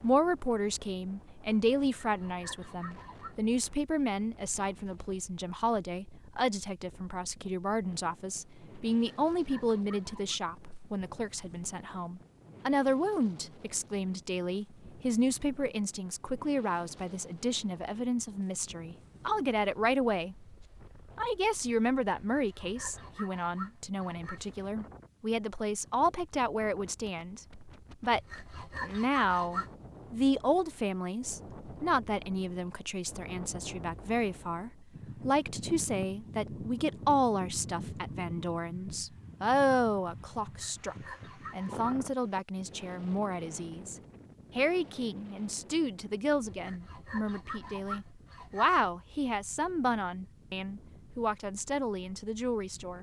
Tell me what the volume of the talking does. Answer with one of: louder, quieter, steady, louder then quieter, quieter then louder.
steady.